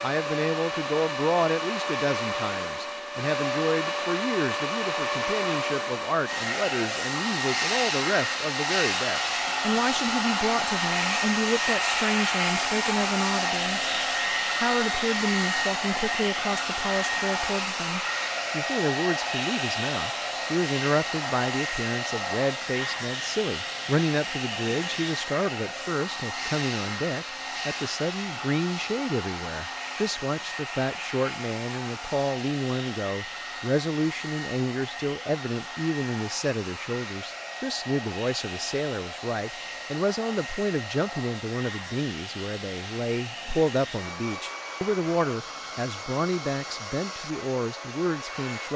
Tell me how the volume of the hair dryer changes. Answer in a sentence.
The loudness of the hair dryer goes down.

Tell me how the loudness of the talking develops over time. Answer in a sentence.
The loudness of the talking stays about the same.